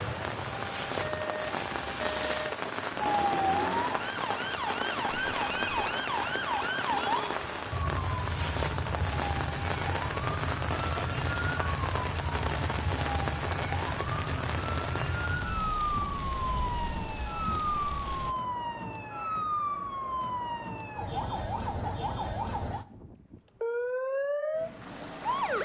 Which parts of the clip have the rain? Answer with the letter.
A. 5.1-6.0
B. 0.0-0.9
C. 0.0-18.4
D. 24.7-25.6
C.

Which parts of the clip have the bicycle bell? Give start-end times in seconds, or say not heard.
5.1-6.0.